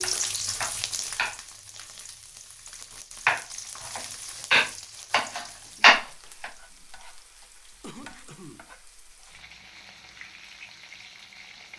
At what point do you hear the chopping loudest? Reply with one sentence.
The loudest moment of the chopping is at 6 seconds.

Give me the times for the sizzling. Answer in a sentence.
The sizzling can be heard from 0.0 to 11.7 s.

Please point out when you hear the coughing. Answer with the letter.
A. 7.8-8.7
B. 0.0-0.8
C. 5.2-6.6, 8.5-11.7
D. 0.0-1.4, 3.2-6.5
A.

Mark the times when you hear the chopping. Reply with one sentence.
The chopping can be heard from 0.0 to 1.4 s and from 3.2 to 6.5 s.